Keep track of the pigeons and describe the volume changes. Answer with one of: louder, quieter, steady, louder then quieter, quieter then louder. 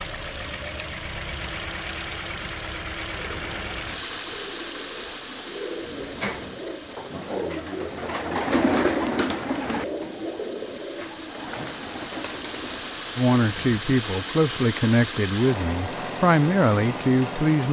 louder then quieter.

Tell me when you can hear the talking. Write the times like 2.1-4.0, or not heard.
13.2-17.6.